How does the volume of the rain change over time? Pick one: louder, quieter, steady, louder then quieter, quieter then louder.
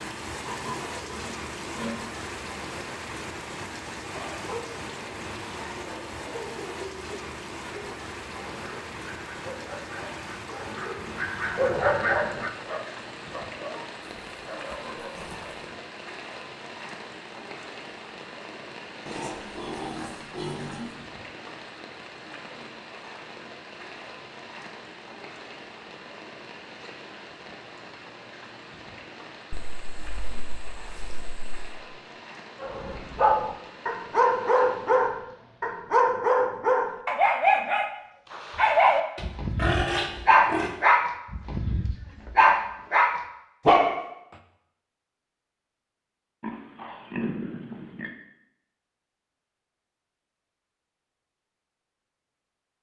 quieter.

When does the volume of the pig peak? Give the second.
40 s.